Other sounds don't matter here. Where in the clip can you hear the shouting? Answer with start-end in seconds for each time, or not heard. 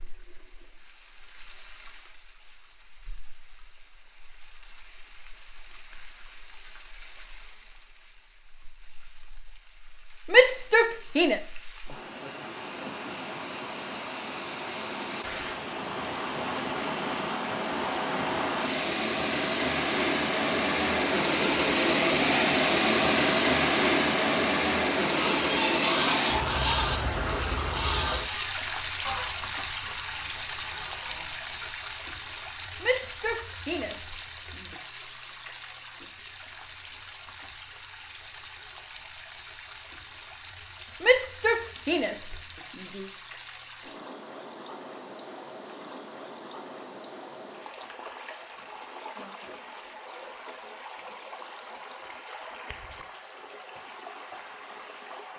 10.3-11.4, 32.8-34.6, 41.0-43.0.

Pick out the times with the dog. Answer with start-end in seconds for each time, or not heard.
not heard.